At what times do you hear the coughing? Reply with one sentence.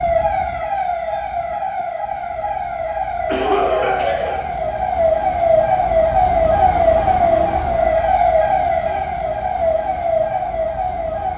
The coughing can be heard from 3.2 to 4.4 s.